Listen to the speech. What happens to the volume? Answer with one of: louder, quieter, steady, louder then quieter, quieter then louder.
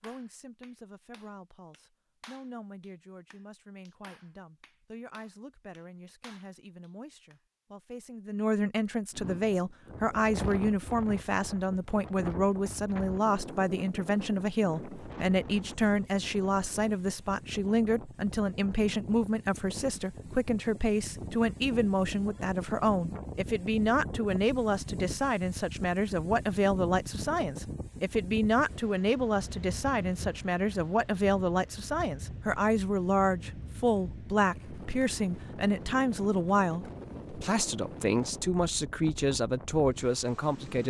louder.